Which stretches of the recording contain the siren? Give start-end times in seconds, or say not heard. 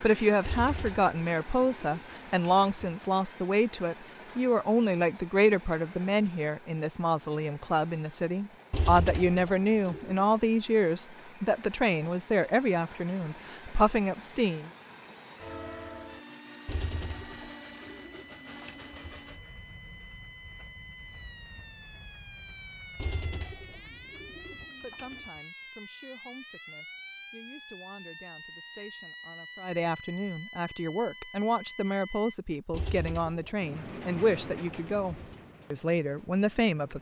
16.1-32.4.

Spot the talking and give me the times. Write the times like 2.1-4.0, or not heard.
0.0-14.7, 24.8-36.9.